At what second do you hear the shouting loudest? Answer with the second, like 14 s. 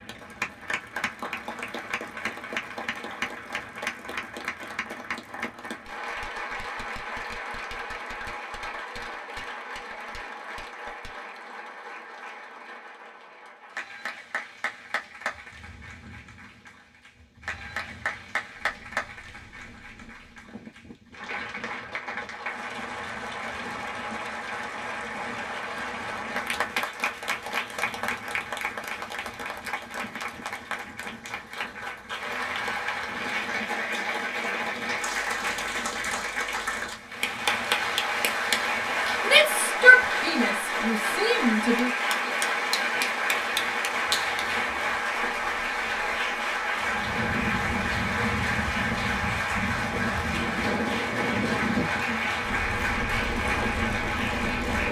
40 s.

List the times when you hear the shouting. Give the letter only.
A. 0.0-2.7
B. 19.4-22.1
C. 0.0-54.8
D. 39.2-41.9
D.